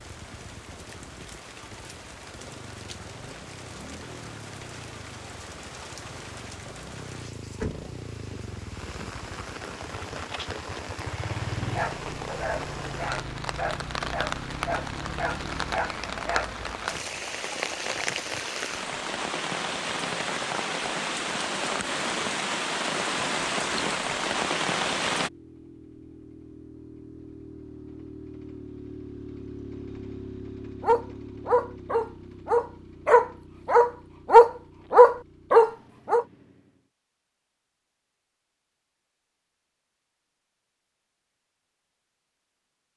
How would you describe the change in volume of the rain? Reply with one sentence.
The loudness of the rain goes up.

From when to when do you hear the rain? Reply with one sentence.
The rain can be heard from 0.0 to 25.3 s.